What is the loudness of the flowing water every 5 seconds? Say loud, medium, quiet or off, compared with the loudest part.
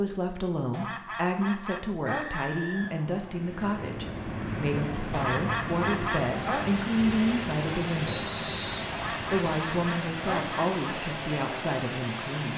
off, loud, loud.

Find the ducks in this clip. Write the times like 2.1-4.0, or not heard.
0.7-2.5, 5.1-6.7, 8.9-10.8.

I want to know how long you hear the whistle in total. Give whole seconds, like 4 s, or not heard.
2 s.